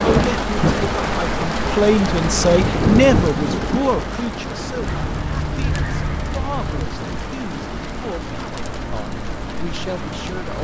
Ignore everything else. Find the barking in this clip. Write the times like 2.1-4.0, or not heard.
not heard.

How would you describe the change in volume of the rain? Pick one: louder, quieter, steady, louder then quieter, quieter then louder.
quieter.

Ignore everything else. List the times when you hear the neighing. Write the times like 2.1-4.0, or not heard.
4.8-6.9.